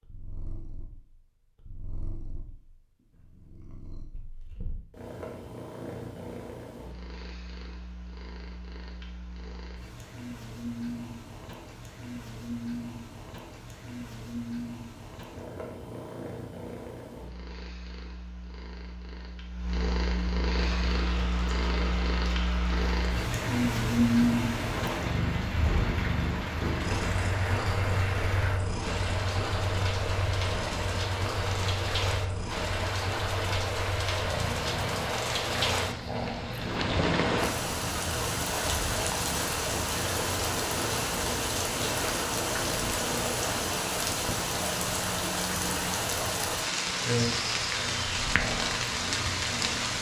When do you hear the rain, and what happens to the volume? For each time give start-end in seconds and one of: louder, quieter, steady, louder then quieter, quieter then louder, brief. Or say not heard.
20.6-49.9 louder.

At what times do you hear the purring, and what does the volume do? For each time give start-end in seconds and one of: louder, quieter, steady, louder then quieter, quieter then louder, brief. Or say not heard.
0.0-49.9 louder then quieter.